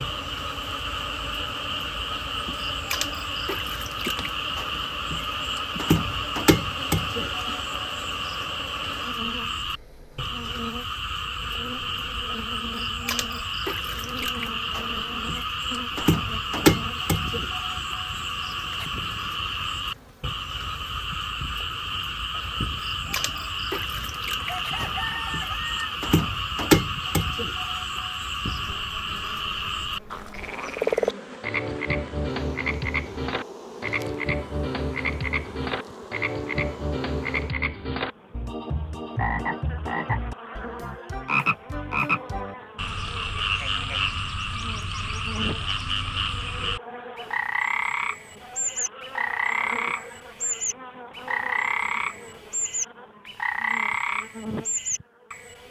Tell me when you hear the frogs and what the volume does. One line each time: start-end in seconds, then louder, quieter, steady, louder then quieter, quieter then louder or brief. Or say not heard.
0.0-55.6 steady.